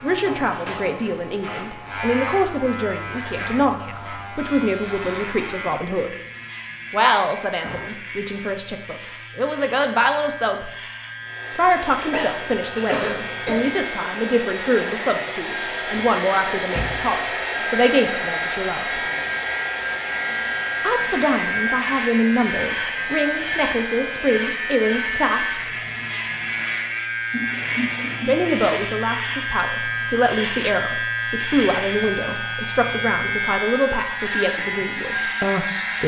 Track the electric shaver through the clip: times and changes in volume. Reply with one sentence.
You can hear the electric shaver from 0.0 to 36.0 s, getting louder.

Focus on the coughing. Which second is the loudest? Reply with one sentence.
The loudest moment of the coughing is at 13 seconds.